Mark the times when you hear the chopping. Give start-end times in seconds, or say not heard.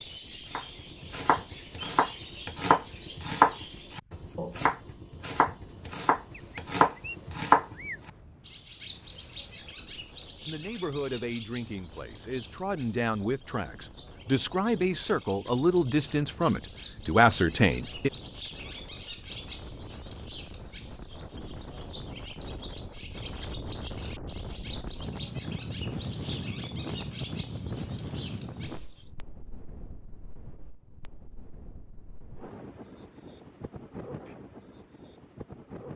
0.6-8.1.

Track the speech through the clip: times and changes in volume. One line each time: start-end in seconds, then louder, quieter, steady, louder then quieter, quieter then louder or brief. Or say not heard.
10.4-18.1 louder.